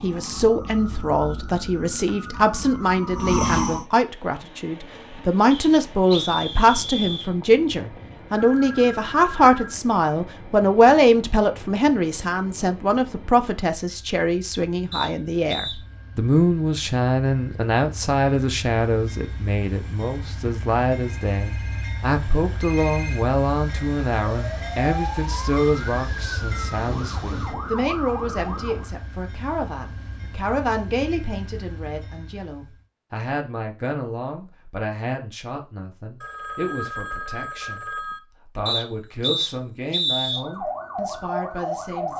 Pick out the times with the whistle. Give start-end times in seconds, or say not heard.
5.5-7.3, 14.9-15.8, 38.6-40.4.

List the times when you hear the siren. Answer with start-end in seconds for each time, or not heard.
0.0-3.9, 24.4-28.9, 40.3-42.1.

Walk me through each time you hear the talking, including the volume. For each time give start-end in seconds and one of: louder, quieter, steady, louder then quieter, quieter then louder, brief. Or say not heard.
0.0-42.1 quieter.